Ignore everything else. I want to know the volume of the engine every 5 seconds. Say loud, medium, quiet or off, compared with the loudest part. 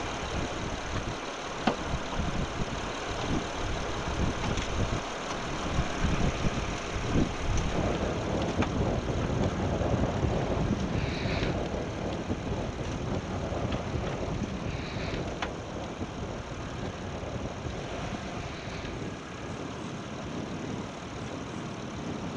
loud, loud, medium, medium, medium.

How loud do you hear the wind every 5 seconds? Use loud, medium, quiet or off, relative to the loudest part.
medium, loud, loud, medium, medium.